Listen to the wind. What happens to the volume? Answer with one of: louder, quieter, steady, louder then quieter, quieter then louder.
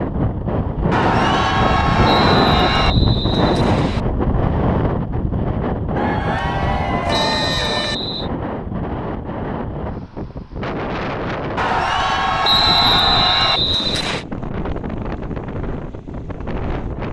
quieter.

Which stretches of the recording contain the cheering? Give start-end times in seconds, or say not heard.
0.9-3.0, 6.0-8.0, 11.6-13.6.